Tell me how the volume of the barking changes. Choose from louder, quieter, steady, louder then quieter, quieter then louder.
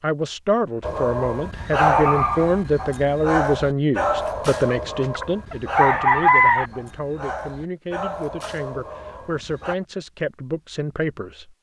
quieter.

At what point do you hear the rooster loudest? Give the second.
6 s.